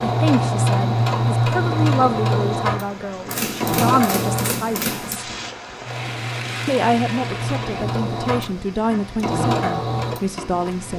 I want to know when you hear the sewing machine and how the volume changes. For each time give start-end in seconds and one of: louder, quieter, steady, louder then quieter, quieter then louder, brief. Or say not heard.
0.0-10.9 quieter then louder.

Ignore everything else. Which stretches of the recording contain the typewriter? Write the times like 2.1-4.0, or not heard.
3.2-5.2.